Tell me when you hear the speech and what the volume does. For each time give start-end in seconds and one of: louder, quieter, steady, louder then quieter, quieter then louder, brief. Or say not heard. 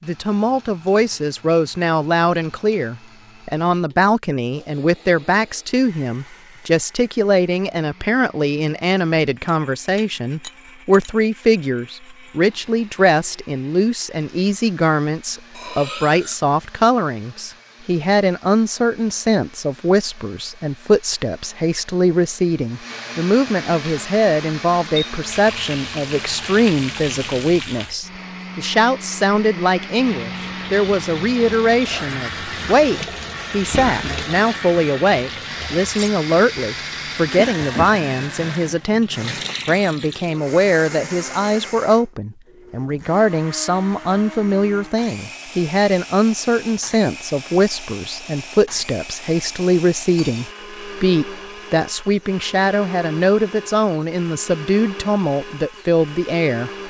0.0-56.7 steady.